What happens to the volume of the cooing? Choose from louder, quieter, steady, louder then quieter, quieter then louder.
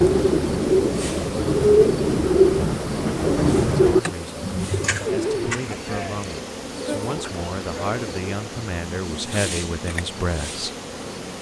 quieter.